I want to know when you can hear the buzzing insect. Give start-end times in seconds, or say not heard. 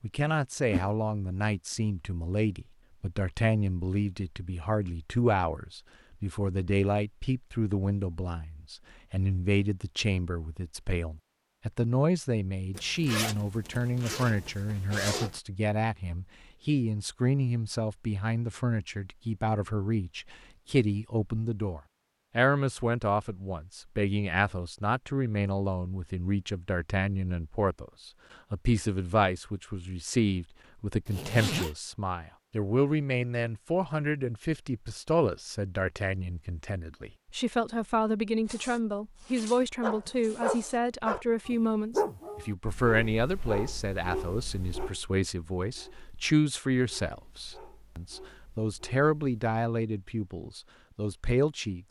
not heard.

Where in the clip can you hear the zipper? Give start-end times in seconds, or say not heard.
12.7-15.4, 31.1-31.8, 38.5-40.8.